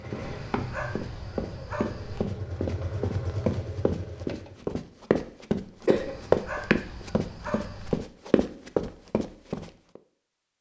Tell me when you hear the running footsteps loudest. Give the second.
6 s.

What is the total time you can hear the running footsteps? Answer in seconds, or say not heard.
10 s.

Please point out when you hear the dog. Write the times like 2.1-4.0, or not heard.
0.2-2.2, 6.0-8.0.